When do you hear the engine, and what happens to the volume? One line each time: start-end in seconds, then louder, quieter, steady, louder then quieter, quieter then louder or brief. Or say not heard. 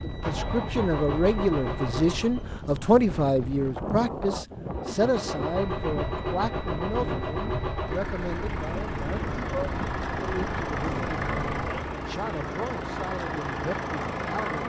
0.0-2.5 brief
4.7-14.6 steady.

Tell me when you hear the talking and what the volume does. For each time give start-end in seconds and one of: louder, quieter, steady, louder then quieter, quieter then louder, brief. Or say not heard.
0.0-14.6 quieter.